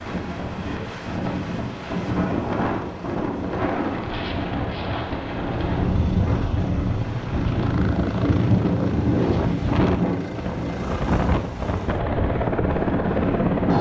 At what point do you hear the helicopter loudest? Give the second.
13 s.